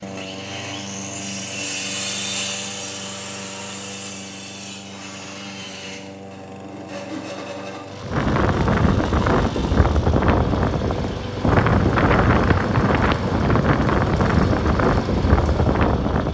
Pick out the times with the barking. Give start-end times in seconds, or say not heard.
not heard.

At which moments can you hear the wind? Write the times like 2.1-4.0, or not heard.
8.0-16.3.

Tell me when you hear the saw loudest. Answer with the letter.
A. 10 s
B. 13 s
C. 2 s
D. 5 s
C.